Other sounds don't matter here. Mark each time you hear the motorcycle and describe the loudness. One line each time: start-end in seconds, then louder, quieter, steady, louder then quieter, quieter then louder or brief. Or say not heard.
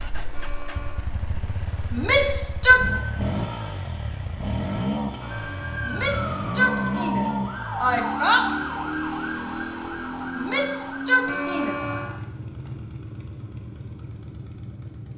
0.0-15.1 louder then quieter.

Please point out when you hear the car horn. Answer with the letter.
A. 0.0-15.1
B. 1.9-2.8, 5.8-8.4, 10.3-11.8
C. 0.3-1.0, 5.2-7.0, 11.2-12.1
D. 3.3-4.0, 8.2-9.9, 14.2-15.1
C.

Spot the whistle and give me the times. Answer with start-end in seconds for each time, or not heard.
not heard.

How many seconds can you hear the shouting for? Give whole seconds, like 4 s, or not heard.
5 s.